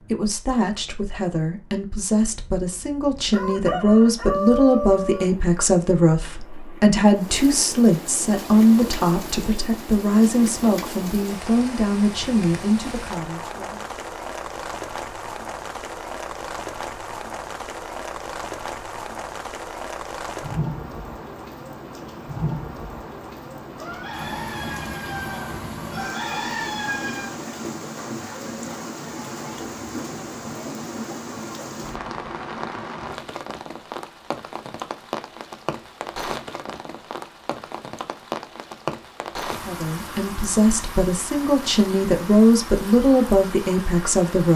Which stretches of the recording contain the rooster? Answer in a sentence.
You can hear the rooster from 3.3 to 5.2 s and from 23.8 to 27.3 s.